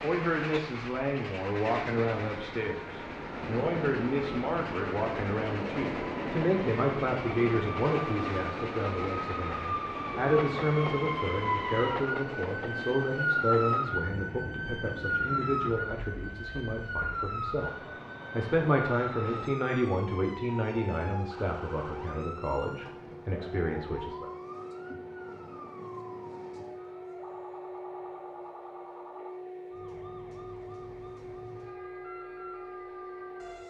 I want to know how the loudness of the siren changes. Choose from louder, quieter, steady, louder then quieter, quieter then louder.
louder then quieter.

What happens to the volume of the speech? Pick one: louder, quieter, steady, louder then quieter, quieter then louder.
steady.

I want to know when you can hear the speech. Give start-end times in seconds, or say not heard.
0.0-24.3.